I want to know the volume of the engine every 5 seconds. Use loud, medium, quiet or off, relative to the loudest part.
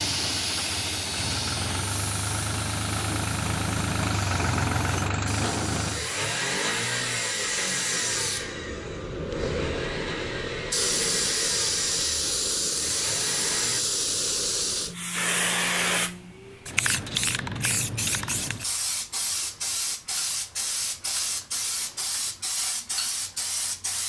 loud, loud, medium, off, off.